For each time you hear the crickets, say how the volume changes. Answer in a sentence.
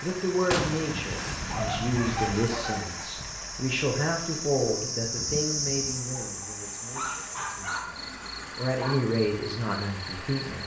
The crickets can be heard from 0.0 to 10.6 s, getting louder then quieter.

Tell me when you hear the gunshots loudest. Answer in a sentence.
The volume of the gunshots peaks at 1 second.